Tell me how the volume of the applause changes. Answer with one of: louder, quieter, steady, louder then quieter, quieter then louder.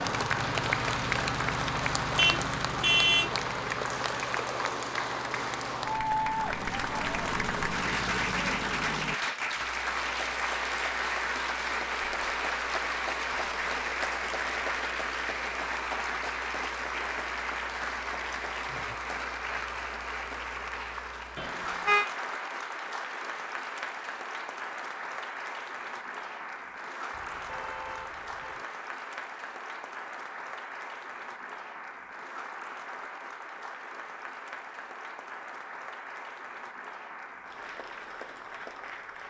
quieter.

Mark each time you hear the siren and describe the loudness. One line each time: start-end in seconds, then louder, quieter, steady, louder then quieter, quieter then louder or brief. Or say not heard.
not heard.